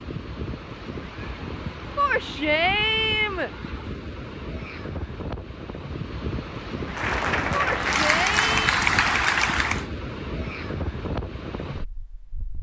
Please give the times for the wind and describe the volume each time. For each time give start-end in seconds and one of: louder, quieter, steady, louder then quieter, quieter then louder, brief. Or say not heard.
0.0-12.5 steady.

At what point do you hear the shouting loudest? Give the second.
3 s.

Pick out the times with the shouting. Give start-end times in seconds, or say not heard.
1.9-3.5, 7.6-8.8.